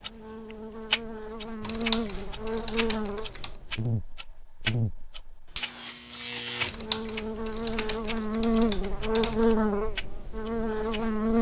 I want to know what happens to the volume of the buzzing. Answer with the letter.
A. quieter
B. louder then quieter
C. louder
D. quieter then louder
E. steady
C.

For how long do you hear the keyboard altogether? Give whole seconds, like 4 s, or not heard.
5 s.